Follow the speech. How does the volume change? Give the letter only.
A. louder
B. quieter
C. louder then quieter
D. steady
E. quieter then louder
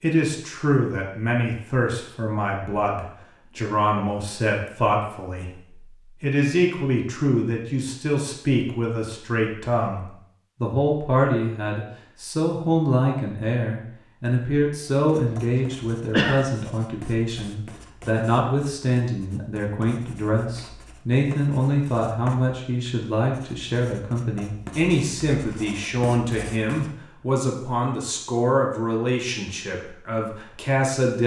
D.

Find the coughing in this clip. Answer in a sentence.
The coughing can be heard from 15.3 to 16.4 s.